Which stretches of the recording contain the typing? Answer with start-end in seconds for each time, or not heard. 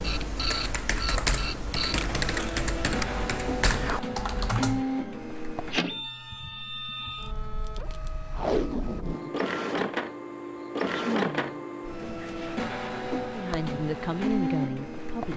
0.0-4.8.